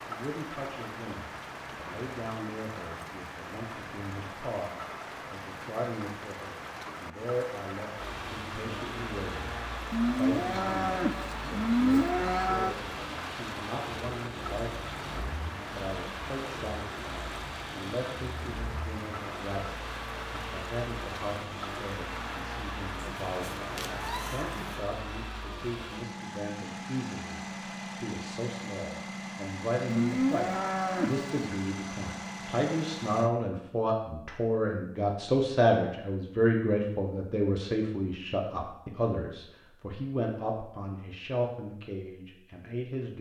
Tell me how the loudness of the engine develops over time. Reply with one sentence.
The loudness of the engine stays about the same.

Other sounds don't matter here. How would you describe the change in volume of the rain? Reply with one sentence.
The volume of the rain stays about the same.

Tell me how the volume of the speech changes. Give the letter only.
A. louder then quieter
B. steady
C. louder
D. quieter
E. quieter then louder
C.